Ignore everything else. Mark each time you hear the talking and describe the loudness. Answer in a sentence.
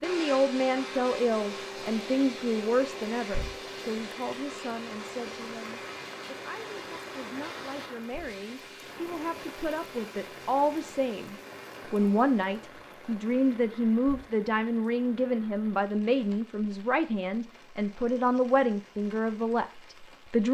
You can hear the talking from 0.0 to 20.4 s, getting quieter then louder.